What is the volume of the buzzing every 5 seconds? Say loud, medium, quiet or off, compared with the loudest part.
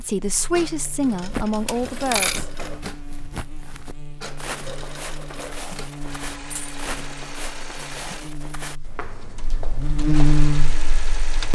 quiet, quiet, loud.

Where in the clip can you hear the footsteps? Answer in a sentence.
You can hear the footsteps from 1.1 to 10.6 s.